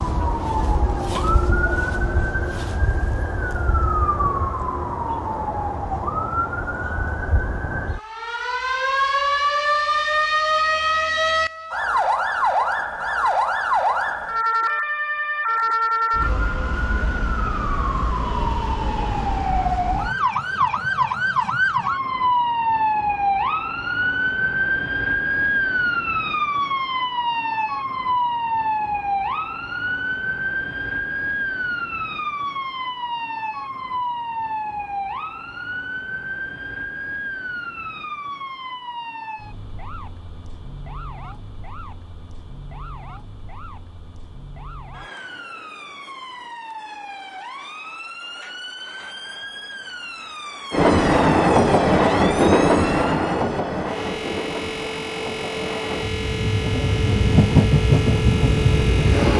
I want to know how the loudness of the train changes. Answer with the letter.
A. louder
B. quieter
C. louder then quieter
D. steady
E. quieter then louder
E.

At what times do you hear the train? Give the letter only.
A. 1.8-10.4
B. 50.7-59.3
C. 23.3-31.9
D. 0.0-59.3
B.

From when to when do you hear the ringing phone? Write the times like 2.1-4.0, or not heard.
not heard.